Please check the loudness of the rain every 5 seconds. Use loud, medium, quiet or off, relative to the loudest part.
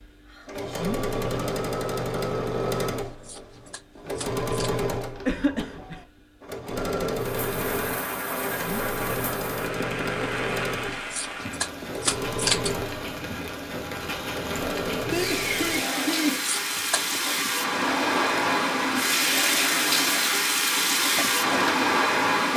off, medium, medium, loud, loud.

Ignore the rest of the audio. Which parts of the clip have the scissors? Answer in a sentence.
The scissors can be heard from 3.0 to 4.8 s, from 10.9 to 12.8 s and from 16.4 to 17.2 s.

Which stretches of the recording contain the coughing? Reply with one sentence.
The coughing can be heard from 5.2 to 6.0 s and from 14.9 to 16.4 s.